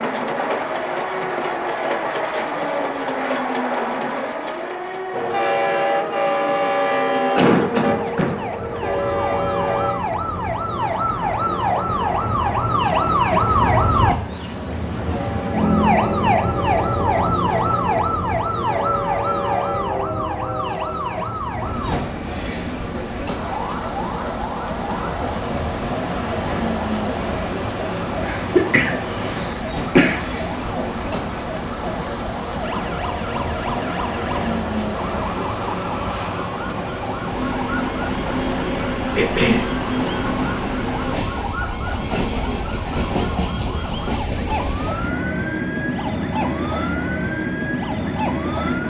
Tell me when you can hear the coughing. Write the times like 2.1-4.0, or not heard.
6.5-8.3, 28.2-30.2, 39.1-39.7.